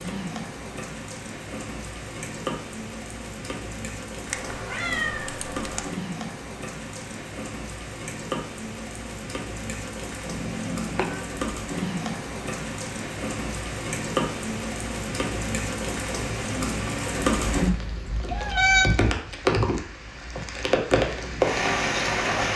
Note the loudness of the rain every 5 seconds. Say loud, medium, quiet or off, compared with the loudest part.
medium, medium, medium, loud, loud.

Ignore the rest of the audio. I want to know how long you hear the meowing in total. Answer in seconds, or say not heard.
4 s.